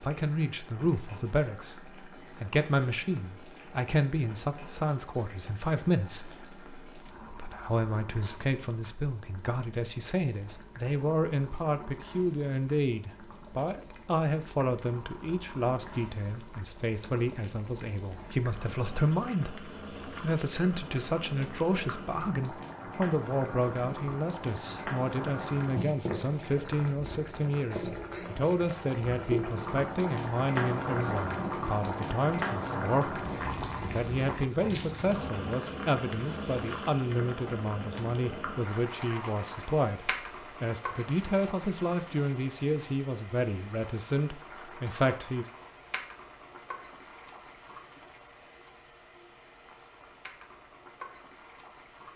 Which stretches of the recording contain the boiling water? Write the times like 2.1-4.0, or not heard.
0.0-52.1.